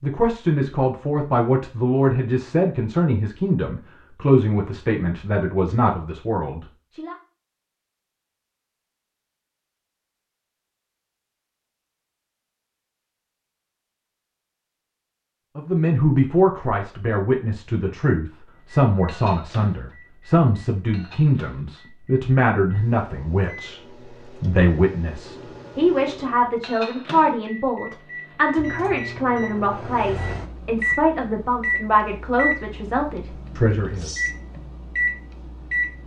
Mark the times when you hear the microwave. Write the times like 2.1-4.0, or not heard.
18.6-36.0.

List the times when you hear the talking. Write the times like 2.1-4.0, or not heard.
0.0-7.2, 15.6-34.1.